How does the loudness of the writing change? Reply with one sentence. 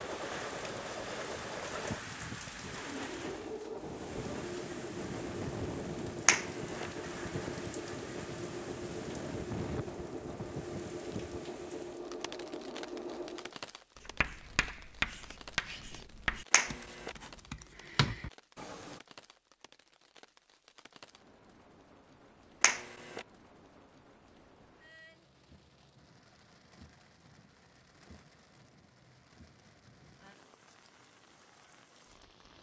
The volume of the writing goes down, then up.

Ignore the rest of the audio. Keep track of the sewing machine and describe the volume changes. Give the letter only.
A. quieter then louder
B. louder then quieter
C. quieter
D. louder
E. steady
E.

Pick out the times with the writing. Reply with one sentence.
You can hear the writing from 14.0 to 19.0 s.